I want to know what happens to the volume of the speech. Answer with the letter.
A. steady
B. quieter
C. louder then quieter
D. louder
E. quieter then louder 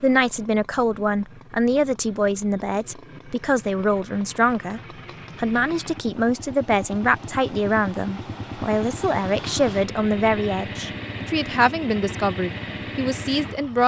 A.